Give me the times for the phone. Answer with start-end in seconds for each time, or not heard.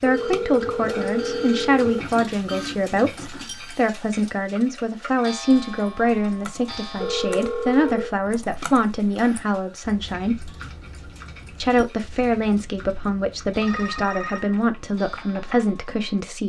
0.1-2.0, 7.0-8.2, 13.6-14.6.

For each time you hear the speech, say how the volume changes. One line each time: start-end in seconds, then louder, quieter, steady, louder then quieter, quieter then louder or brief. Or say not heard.
0.0-10.5 steady
11.6-16.4 steady.